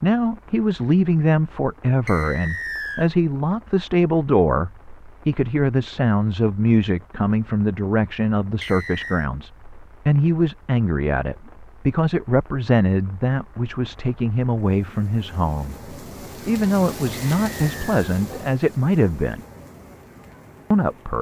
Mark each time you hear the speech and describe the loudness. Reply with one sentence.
The speech can be heard from 0.0 to 19.4 s, at a steady volume; and briefly from 20.7 to 21.1 s.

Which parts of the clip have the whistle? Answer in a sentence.
The whistle can be heard from 2.0 to 3.1 s, from 8.6 to 9.3 s and from 17.1 to 17.9 s.